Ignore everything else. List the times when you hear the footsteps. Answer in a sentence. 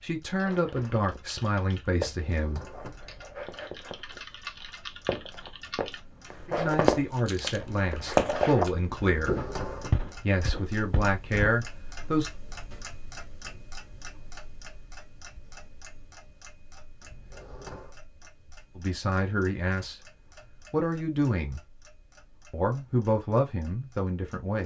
You can hear the footsteps from 0.3 to 11.6 s.